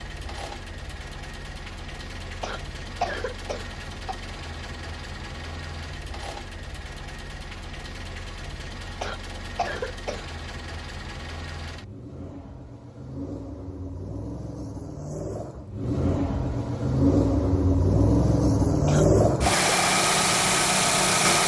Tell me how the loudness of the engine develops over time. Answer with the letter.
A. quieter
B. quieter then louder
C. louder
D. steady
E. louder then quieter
C.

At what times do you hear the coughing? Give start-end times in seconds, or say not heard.
2.4-4.2, 9.0-10.2, 18.9-19.6.